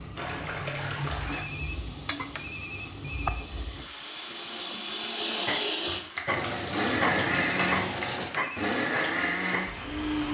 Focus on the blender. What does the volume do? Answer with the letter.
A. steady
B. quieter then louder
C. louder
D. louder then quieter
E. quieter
C.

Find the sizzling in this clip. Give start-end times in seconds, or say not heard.
0.0-10.2.